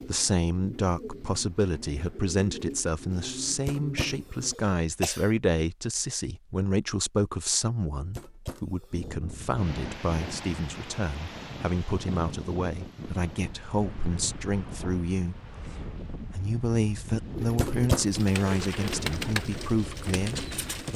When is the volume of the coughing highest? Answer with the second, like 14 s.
18 s.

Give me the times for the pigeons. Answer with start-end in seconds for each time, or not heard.
0.0-4.5, 17.3-20.9.